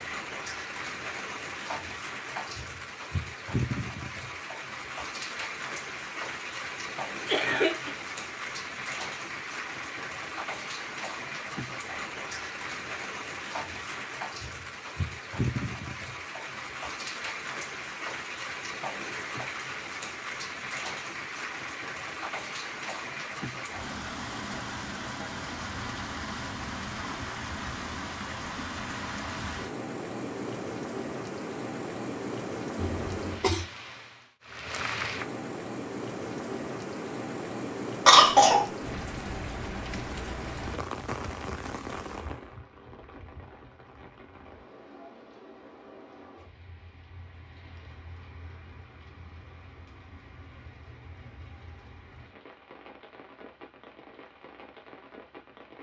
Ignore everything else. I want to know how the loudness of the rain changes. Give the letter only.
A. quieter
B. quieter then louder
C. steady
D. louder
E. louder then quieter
A.